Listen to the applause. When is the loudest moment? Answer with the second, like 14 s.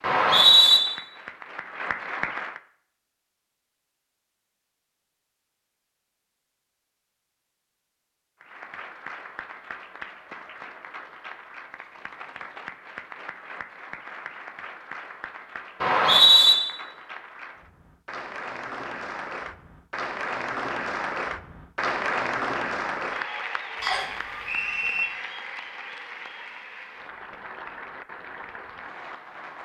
22 s.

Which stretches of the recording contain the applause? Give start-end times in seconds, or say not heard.
0.0-2.6, 8.4-29.6.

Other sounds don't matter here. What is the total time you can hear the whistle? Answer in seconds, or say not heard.
3 s.